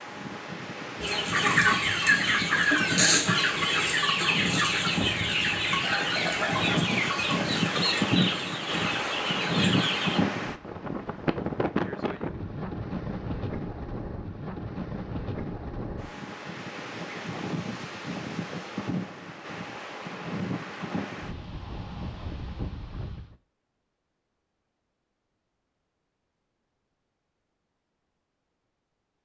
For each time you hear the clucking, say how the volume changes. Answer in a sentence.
You can hear the clucking from 1.0 to 10.2 s, getting quieter.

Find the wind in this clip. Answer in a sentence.
You can hear the wind from 0.0 to 23.4 s.